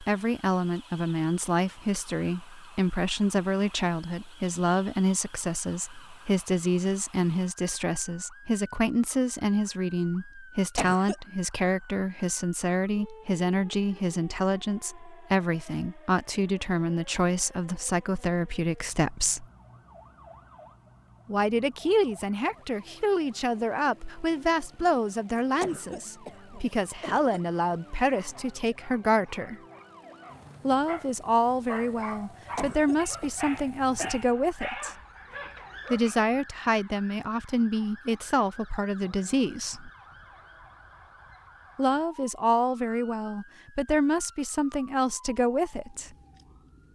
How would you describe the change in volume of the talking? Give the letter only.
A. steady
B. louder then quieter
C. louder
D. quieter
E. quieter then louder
A.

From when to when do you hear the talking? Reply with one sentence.
The talking can be heard from 0.0 to 19.4 s, from 21.2 to 29.6 s, from 30.6 to 35.0 s, from 35.9 to 39.9 s and from 41.8 to 46.1 s.